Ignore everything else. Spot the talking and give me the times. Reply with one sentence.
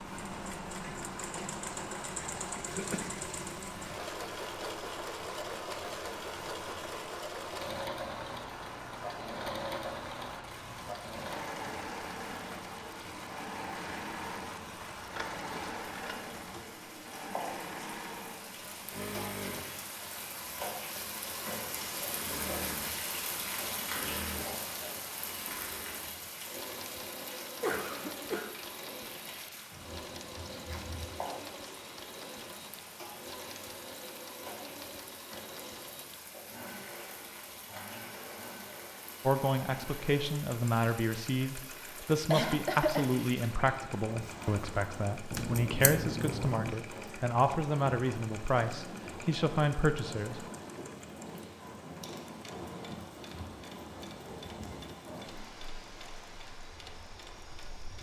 The talking can be heard from 39.2 to 50.4 s.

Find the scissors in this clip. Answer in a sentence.
The scissors can be heard from 14.8 to 16.6 s, from 29.7 to 31.1 s and from 45.3 to 46.8 s.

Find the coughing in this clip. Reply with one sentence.
You can hear the coughing from 2.7 to 3.2 s, from 27.6 to 28.5 s and from 42.3 to 43.1 s.